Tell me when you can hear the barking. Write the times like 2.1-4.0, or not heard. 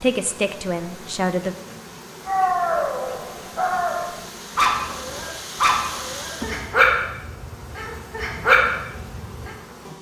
2.2-9.6.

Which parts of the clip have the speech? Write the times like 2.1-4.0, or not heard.
0.0-1.6.